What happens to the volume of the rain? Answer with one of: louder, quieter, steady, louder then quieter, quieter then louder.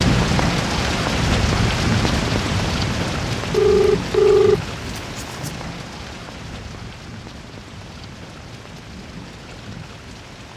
quieter.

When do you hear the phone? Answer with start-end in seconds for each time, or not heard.
3.5-5.5.